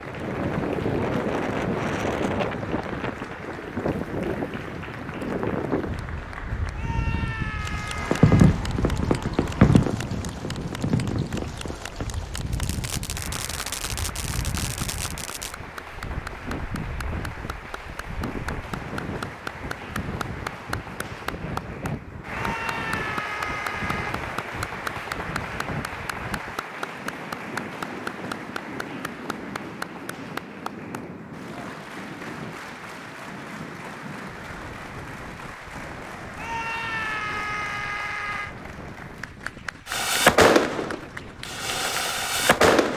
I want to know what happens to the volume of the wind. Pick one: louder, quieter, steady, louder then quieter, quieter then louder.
quieter.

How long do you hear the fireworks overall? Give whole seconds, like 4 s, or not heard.
11 s.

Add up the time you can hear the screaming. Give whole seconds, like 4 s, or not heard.
6 s.